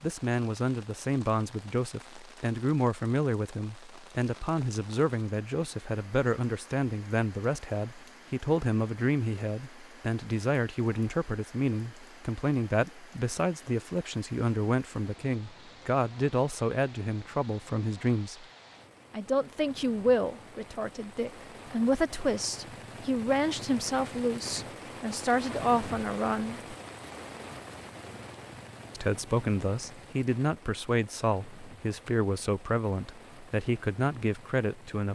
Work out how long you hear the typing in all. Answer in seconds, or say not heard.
not heard.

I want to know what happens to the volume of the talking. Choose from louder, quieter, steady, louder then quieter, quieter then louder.
steady.